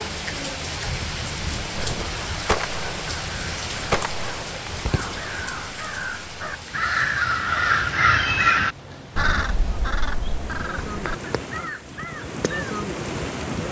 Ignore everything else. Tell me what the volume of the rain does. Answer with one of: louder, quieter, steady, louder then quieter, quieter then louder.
quieter then louder.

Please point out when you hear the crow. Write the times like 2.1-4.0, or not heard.
1.7-12.8.